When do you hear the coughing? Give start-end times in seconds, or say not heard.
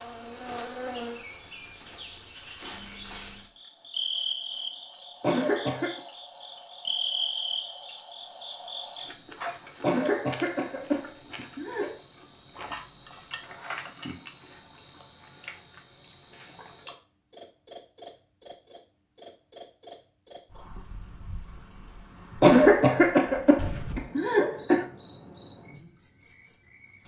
5.2-6.0, 9.8-11.9, 22.4-24.9.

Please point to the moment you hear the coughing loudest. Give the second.
23 s.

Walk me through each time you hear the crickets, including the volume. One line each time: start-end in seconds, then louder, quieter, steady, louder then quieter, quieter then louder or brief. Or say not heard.
0.0-27.0 steady.